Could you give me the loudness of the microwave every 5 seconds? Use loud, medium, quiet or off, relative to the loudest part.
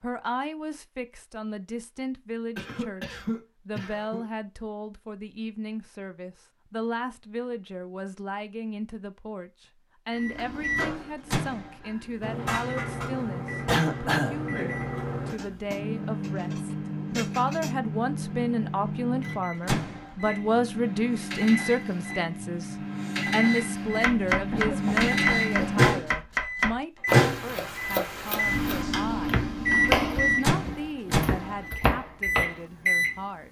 off, off, medium, medium, medium, loud, loud.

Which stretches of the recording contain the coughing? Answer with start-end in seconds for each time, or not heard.
2.5-4.2, 13.7-14.8, 24.5-26.0.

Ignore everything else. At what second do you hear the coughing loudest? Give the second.
14 s.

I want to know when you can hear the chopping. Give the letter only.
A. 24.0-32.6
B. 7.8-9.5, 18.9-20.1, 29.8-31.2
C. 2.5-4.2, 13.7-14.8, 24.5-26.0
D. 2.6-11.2
A.